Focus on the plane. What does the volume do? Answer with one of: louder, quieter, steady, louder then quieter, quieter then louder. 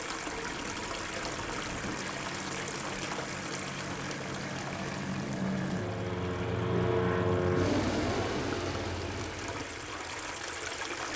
louder then quieter.